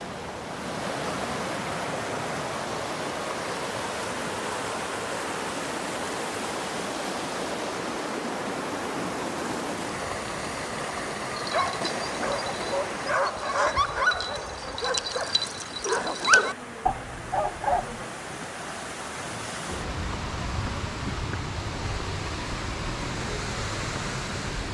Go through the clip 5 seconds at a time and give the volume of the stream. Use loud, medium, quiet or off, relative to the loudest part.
loud, loud, loud, medium, loud.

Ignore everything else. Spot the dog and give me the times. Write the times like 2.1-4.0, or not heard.
11.2-18.0.